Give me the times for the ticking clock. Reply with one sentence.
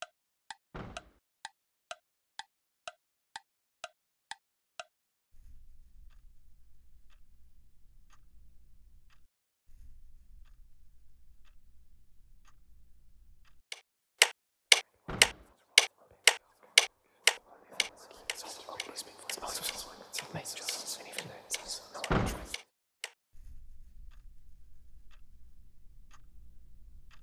The ticking clock can be heard from 0.0 to 27.1 s.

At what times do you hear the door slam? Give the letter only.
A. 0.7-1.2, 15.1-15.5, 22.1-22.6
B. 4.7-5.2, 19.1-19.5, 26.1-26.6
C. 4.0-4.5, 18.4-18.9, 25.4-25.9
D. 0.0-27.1
A.